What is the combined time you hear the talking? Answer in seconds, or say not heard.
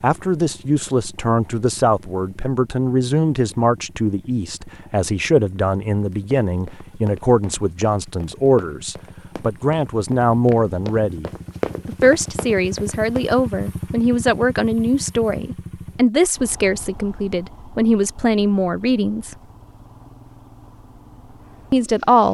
20 s.